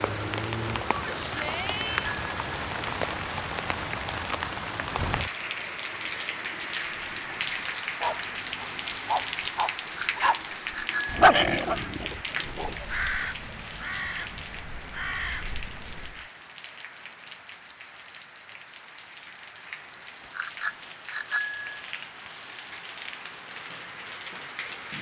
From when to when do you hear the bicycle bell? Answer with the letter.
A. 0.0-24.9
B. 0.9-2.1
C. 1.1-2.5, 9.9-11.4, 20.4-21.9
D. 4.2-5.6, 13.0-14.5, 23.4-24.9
C.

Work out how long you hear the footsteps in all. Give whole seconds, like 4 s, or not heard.
not heard.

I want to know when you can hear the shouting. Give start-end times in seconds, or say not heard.
0.9-2.1.